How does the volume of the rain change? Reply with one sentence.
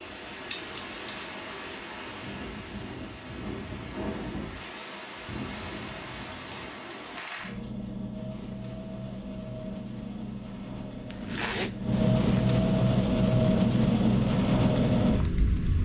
The volume of the rain goes up.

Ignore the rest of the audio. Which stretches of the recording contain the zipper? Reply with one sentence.
The zipper can be heard from 11.1 to 12.4 s.